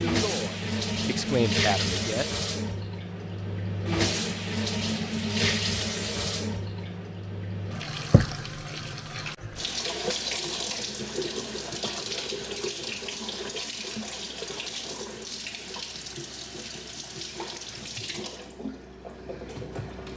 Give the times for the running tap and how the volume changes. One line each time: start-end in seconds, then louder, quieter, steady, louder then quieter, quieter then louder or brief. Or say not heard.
0.0-20.1 quieter.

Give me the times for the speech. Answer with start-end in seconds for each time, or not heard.
0.0-2.2.